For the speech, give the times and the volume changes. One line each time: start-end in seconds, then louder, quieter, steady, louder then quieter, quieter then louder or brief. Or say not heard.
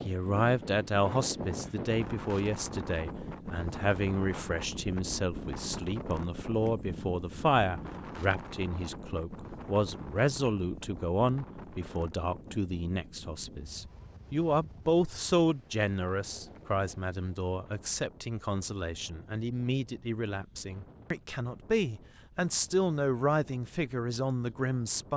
0.1-25.1 steady.